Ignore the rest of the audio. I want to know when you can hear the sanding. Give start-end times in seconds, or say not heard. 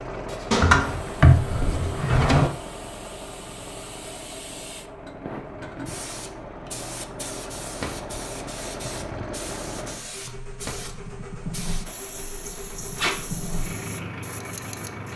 not heard.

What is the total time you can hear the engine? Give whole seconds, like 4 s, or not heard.
15 s.